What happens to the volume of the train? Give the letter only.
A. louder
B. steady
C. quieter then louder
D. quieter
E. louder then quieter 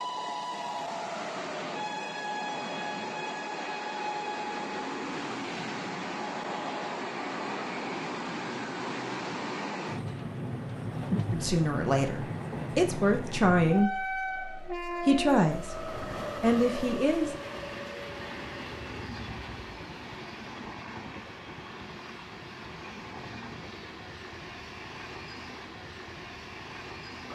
D.